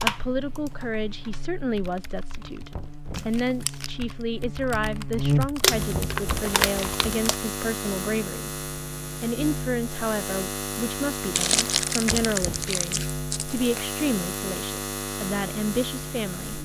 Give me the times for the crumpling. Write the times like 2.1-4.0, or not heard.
3.1-3.9, 5.6-7.3, 11.3-13.8.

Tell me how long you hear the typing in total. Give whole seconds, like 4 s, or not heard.
7 s.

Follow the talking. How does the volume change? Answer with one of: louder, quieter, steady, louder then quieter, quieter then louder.
steady.